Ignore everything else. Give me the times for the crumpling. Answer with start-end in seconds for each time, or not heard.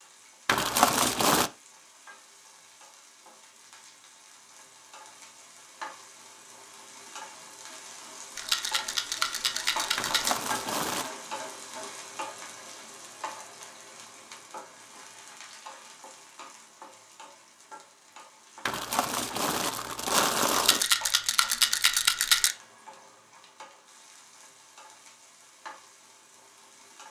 0.5-1.5, 9.9-11.1, 18.6-20.9.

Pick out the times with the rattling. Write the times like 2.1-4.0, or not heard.
8.3-10.3, 20.5-22.6.